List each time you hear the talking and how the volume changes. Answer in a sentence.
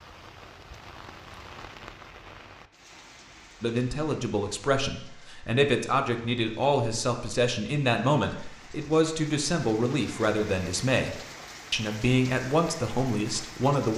The talking can be heard from 3.6 to 13.9 s, at a steady volume.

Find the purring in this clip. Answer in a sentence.
You can't hear the purring here.